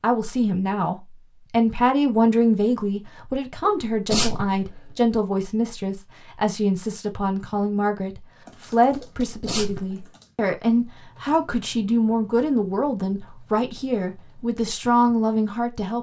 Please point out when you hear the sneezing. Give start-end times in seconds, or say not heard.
3.6-5.0, 9.2-10.1.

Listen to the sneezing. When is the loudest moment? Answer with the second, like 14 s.
4 s.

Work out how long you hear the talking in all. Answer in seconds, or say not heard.
16 s.